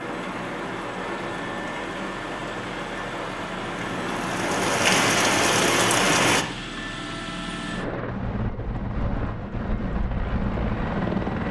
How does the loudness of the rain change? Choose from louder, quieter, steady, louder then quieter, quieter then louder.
louder.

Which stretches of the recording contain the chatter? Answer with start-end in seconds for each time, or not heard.
not heard.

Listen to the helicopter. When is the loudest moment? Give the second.
11 s.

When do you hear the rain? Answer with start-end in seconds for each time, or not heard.
0.0-6.5.